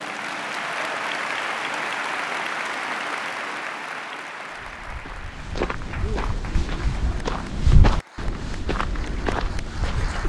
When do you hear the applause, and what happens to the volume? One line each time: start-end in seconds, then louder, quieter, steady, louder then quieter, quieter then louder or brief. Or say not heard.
0.0-10.2 quieter.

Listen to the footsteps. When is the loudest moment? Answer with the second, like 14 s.
8 s.